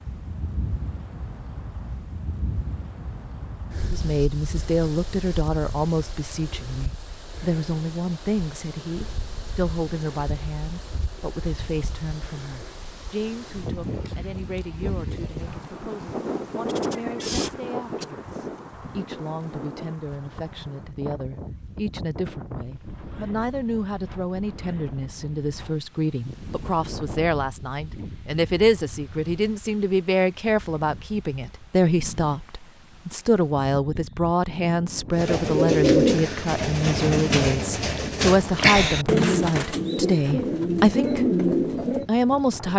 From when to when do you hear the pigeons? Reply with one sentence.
You can hear the pigeons from 35.1 to 42.0 s.